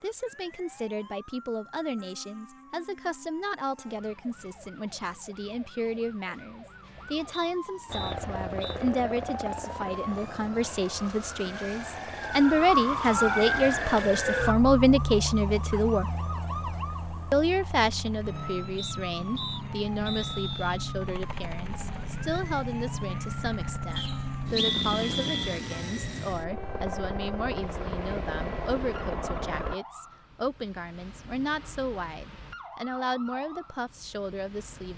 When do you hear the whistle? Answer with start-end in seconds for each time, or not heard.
7.3-8.8, 18.8-20.8, 23.9-25.6.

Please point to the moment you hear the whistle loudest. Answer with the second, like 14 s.
25 s.